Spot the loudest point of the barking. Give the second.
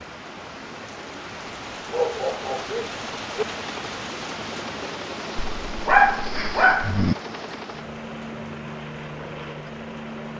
6 s.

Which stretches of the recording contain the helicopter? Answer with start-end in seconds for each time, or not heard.
0.0-10.3.